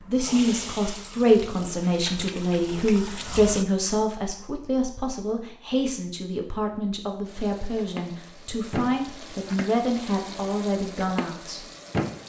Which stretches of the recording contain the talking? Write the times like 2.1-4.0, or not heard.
0.1-11.6.